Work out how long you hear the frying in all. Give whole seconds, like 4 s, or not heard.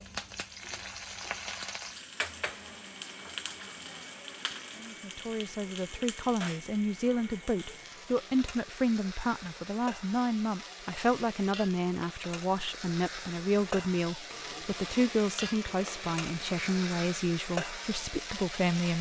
19 s.